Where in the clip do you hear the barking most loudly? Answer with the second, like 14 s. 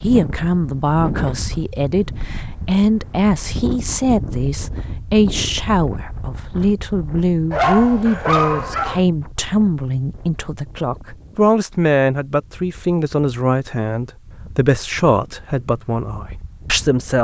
8 s.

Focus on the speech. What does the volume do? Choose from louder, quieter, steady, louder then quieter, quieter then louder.
steady.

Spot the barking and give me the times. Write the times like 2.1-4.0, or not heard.
7.5-9.0.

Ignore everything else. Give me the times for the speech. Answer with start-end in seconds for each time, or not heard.
0.0-17.1.